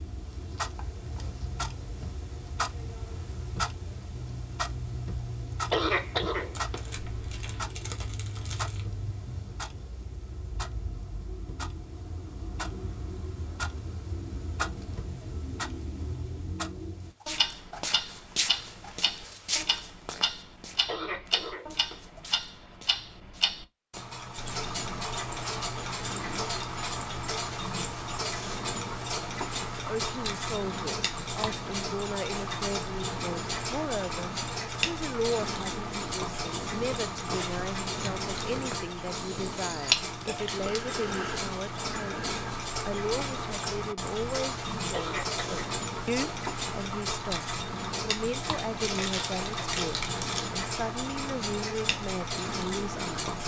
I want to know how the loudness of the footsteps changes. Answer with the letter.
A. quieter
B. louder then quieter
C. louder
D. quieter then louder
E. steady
D.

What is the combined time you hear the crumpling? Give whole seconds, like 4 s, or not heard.
4 s.